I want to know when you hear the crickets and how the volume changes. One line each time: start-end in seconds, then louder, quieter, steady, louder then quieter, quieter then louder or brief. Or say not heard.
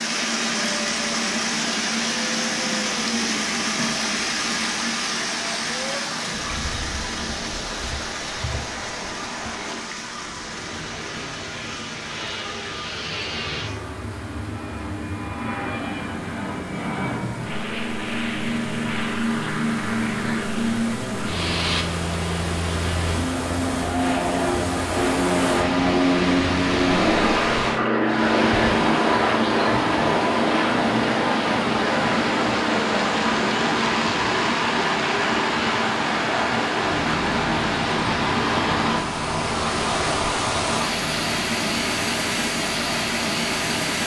not heard.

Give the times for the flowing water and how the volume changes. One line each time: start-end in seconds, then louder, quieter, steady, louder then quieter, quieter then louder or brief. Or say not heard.
0.0-44.0 quieter then louder.